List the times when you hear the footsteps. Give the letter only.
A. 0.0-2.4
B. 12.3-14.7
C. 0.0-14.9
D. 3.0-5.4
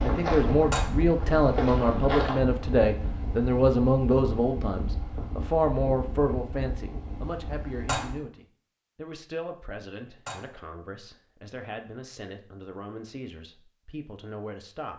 A.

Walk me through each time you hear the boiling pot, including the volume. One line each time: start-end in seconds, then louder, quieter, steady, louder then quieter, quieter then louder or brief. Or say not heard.
not heard.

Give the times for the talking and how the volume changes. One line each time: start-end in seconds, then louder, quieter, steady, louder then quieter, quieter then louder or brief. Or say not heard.
0.0-14.9 quieter.